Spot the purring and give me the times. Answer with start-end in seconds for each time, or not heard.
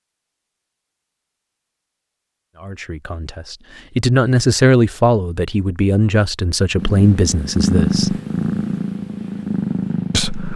6.8-10.5.